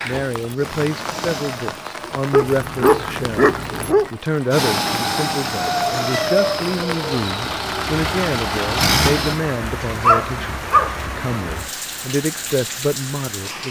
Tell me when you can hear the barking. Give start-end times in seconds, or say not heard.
2.3-4.1, 10.0-10.9.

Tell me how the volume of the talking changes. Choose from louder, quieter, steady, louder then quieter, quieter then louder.
steady.